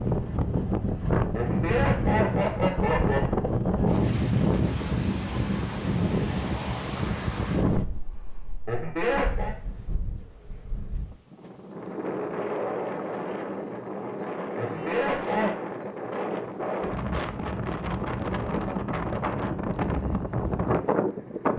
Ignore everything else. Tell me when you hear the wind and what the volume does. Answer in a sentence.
You can hear the wind from 0.0 to 21.5 s, getting quieter then louder.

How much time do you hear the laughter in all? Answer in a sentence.
The laughter can be heard for 4 seconds in total.